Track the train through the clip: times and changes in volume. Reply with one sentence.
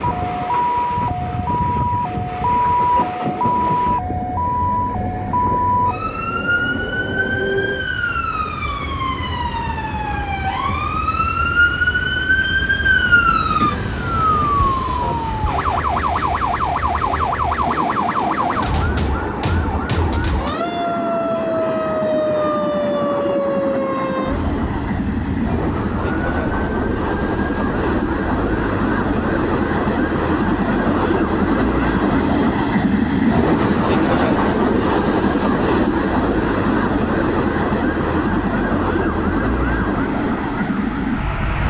You can hear the train from 0.0 to 41.6 s, getting louder.